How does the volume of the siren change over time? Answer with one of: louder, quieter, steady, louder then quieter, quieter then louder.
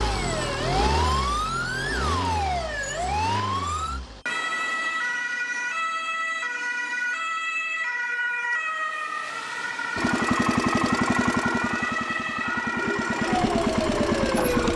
steady.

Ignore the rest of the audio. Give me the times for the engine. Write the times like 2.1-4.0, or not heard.
0.0-4.2, 9.9-14.7.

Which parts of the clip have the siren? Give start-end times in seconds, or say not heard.
0.0-14.7.